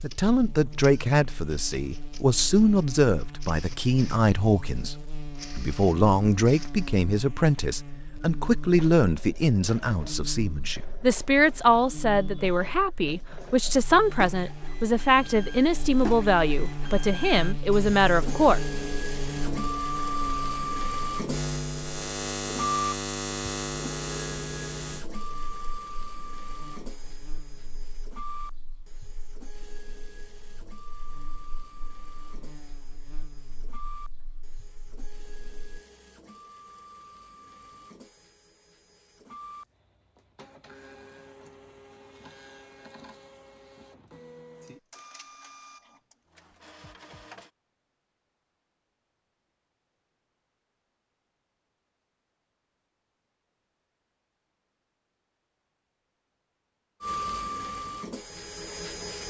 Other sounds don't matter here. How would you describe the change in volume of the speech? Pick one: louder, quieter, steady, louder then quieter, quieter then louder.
steady.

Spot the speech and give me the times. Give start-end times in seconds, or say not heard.
0.0-18.6.